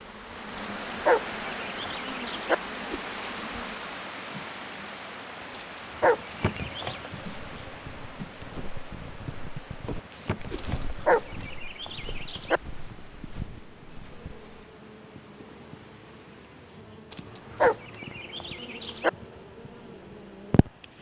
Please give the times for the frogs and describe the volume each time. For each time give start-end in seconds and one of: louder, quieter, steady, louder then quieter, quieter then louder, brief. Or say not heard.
not heard.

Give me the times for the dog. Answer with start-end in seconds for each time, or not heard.
0.6-2.5, 5.5-7.0, 10.6-12.6, 17.1-19.1.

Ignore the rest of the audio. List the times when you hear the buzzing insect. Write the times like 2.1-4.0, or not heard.
0.0-20.9.